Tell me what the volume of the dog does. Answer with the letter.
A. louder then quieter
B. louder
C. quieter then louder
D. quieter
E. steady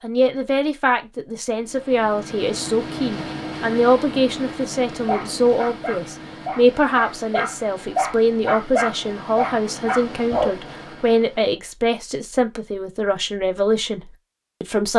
B.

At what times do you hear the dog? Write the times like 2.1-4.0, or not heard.
5.0-10.6.